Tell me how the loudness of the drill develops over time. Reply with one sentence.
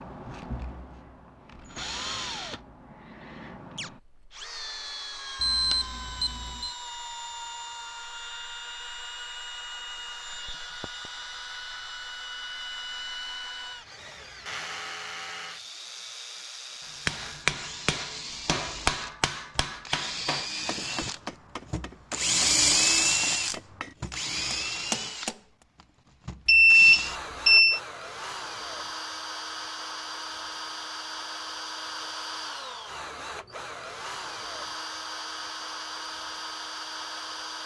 The volume of the drill goes up, then down.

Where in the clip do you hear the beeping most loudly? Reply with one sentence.
The loudest moment of the beeping is at 27 seconds.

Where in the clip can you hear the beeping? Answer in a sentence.
The beeping can be heard from 5.4 to 6.7 s and from 26.4 to 27.8 s.